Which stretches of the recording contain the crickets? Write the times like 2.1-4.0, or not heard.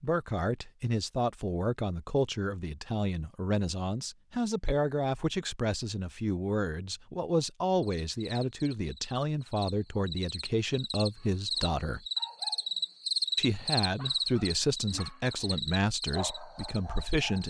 7.8-17.4.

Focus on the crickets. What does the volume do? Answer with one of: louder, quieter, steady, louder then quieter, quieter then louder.
louder then quieter.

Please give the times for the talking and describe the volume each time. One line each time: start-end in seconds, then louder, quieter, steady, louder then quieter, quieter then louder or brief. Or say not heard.
0.0-12.1 steady
13.3-17.4 quieter.